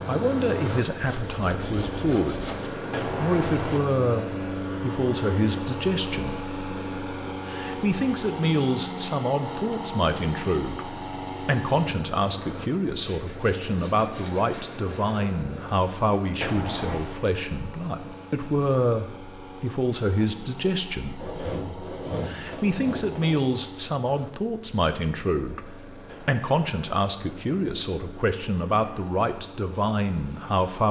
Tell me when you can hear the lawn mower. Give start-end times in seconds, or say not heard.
0.0-30.8.